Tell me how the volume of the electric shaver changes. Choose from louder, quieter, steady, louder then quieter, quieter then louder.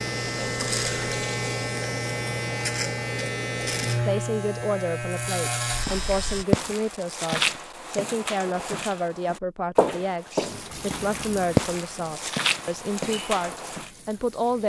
steady.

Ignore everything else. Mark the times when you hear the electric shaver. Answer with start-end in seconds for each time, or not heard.
0.0-6.5.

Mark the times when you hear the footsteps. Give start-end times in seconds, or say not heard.
5.7-13.9.